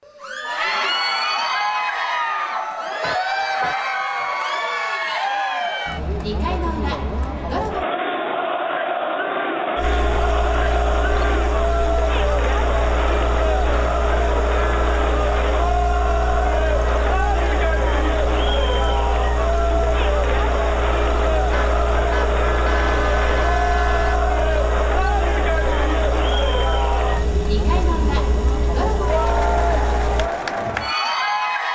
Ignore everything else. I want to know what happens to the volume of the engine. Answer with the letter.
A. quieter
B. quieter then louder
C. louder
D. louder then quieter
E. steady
E.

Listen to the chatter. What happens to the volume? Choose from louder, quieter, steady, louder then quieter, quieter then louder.
steady.